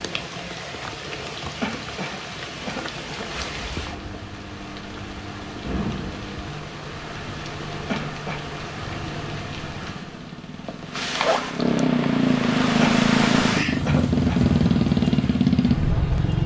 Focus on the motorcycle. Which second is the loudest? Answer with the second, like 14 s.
15 s.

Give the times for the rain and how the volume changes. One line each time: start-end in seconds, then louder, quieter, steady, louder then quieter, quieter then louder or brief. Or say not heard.
0.0-16.4 louder.